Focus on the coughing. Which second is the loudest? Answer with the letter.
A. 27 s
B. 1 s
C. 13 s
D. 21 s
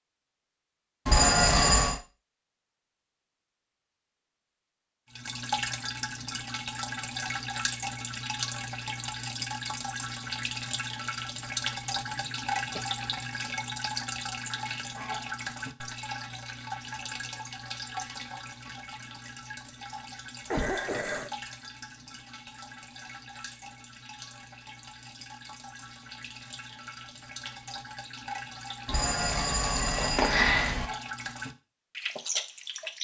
D.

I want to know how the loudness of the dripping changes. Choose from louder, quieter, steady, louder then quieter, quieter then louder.
quieter then louder.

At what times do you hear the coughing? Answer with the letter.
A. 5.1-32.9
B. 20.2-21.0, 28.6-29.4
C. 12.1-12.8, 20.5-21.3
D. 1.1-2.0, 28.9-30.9
C.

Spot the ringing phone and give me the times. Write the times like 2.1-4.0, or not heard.
1.1-2.0, 28.9-30.9.